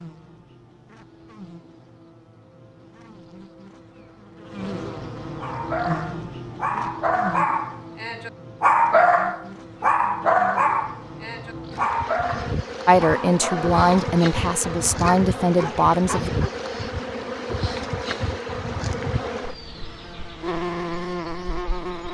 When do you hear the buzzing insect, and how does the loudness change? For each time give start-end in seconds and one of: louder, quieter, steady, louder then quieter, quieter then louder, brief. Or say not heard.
0.0-22.0 louder.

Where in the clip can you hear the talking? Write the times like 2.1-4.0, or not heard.
12.8-16.3.